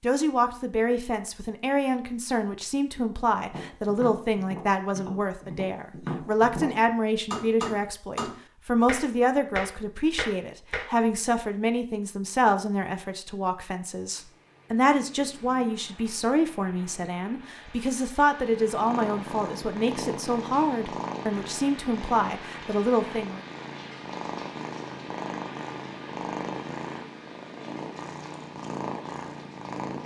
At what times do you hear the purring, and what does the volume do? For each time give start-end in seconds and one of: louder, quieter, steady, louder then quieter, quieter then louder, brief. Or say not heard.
18.3-30.0 steady.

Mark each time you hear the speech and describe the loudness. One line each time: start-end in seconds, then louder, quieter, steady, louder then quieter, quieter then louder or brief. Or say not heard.
0.0-23.4 steady.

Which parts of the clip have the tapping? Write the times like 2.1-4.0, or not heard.
3.5-10.9.